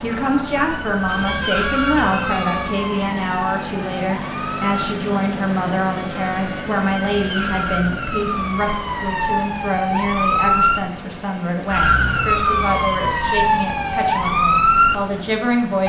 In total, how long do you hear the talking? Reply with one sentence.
You can hear the talking for 16 seconds altogether.